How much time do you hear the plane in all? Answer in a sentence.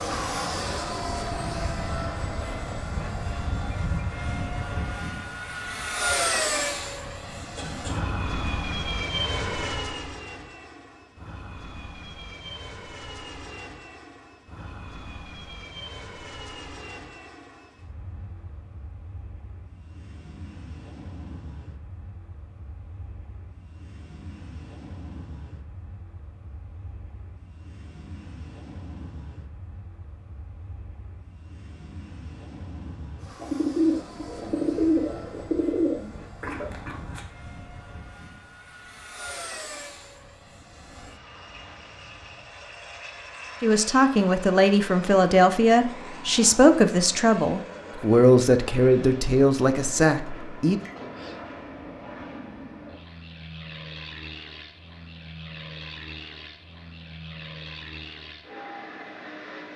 The plane can be heard for 60 seconds in total.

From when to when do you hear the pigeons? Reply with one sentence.
You can hear the pigeons from 33.4 to 36.2 s.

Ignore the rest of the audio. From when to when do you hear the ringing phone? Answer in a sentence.
You can't hear the ringing phone here.